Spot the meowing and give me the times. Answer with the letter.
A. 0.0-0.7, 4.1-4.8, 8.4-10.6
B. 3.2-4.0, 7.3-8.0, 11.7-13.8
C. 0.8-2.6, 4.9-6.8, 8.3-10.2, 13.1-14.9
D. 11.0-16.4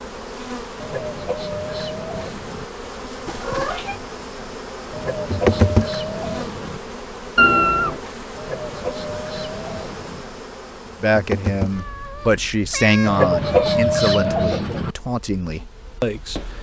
B.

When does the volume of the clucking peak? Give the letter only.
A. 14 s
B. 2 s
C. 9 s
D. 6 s
A.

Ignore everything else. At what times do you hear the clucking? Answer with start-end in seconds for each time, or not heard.
0.8-2.6, 4.9-6.8, 8.3-10.2, 13.1-14.9.